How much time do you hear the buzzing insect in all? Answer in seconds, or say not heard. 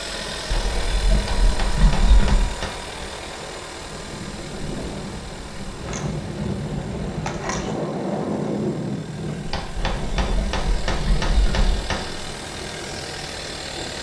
not heard.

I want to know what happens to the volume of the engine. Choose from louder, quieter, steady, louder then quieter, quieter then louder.
quieter then louder.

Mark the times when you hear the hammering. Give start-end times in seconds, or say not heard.
1.1-2.9, 9.4-12.2.